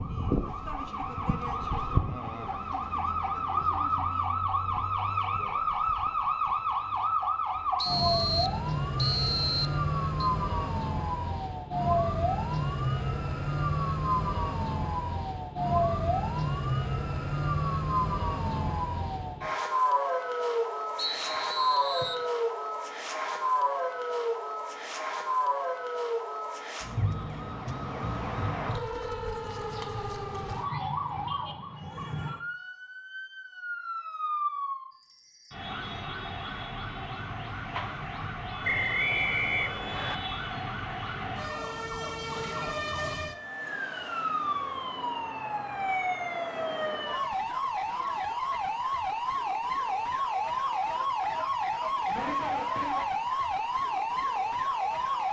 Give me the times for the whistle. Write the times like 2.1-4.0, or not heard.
7.8-10.3, 20.9-22.2, 38.6-40.1.